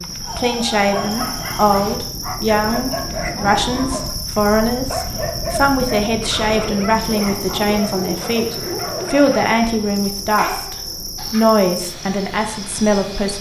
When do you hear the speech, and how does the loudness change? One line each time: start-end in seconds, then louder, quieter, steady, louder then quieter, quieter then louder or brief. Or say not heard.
0.3-13.3 steady.